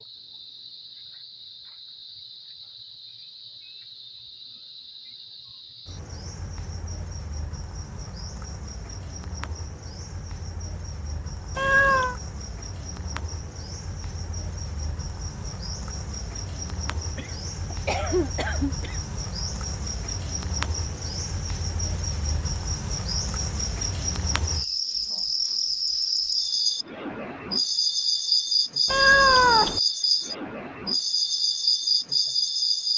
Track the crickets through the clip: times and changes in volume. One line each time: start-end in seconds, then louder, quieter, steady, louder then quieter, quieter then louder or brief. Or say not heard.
0.0-32.9 louder.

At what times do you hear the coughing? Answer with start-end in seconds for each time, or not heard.
17.1-19.0.